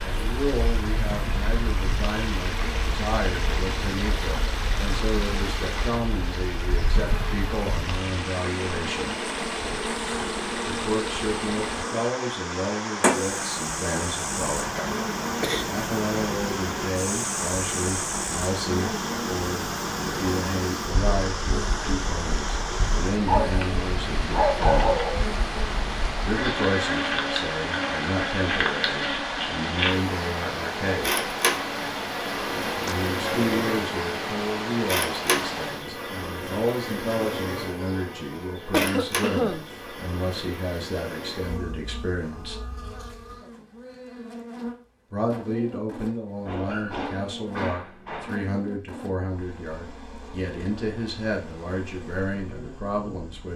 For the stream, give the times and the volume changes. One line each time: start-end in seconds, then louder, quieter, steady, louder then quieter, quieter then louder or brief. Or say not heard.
0.0-35.9 steady.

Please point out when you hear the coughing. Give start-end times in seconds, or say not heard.
14.7-15.7, 38.7-39.7.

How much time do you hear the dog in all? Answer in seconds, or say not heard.
4 s.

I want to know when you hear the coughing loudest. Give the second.
39 s.